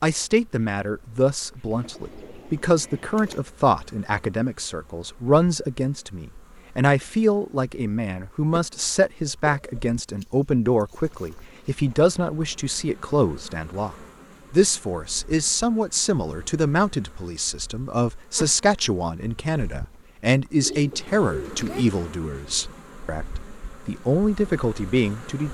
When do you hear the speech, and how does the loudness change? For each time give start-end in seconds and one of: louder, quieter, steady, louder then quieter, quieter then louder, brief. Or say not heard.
0.0-25.4 steady.